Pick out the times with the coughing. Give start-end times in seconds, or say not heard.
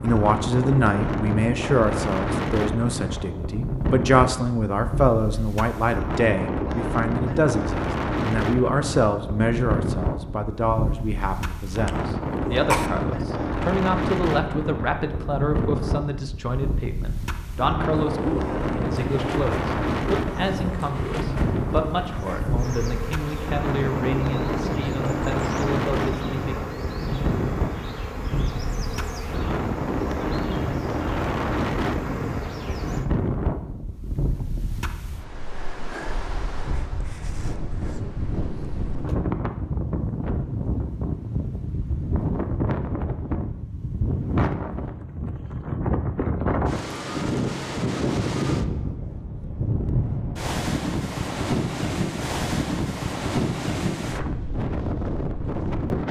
11.7-12.9.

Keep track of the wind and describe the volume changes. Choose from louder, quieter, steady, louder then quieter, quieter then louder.
steady.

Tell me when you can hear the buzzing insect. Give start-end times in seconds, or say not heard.
17.9-33.1.